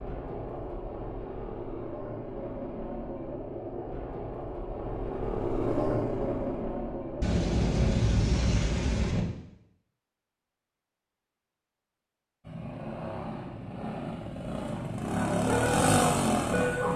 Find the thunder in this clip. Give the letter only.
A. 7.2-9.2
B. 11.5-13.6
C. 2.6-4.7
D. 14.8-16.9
A.